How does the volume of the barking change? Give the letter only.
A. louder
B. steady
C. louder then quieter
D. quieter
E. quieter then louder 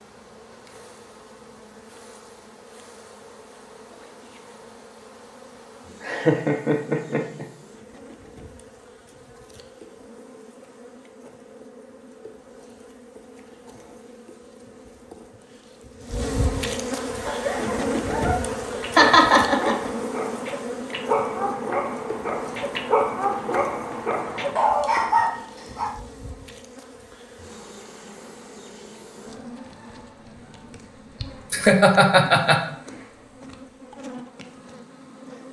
A.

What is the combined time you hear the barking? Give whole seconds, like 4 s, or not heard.
9 s.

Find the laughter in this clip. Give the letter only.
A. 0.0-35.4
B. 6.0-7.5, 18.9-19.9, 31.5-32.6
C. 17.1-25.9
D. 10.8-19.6
B.